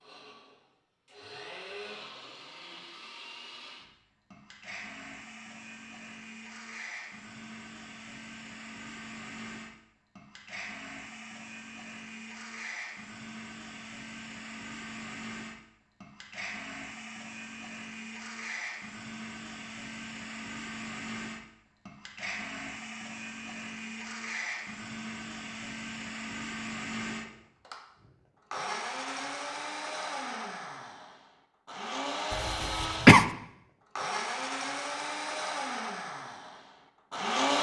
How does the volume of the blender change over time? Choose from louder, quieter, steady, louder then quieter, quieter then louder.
louder.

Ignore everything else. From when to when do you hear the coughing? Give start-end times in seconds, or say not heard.
32.3-33.2.